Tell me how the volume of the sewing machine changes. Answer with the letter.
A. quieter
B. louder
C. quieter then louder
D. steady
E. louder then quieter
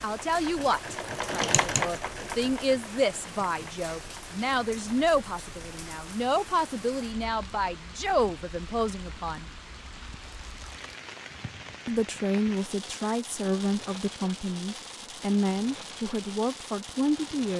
E.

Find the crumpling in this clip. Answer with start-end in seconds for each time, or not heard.
10.2-10.9.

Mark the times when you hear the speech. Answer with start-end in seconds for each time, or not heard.
0.0-9.4, 11.8-17.5.